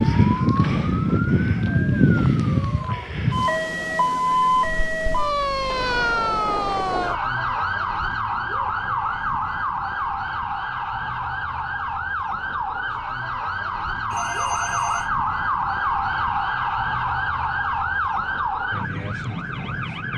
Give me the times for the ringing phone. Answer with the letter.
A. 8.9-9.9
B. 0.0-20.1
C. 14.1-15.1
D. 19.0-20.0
C.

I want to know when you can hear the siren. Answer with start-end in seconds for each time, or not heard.
0.0-20.1.